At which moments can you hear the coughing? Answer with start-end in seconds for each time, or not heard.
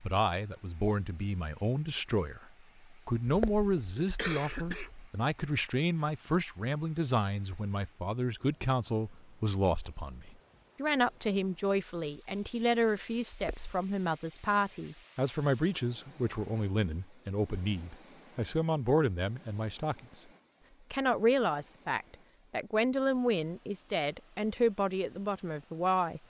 3.2-5.1, 13.3-13.8.